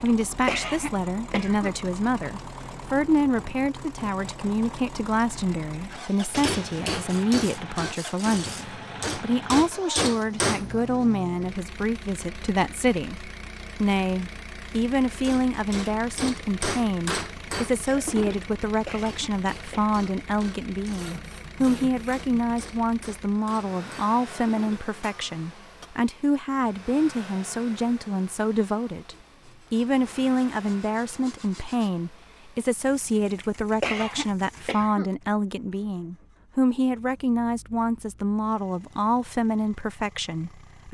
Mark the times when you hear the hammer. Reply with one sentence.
You can hear the hammer from 6.3 to 10.7 s and from 15.2 to 25.9 s.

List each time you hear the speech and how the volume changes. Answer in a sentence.
The speech can be heard from 0.0 to 40.8 s, at a steady volume.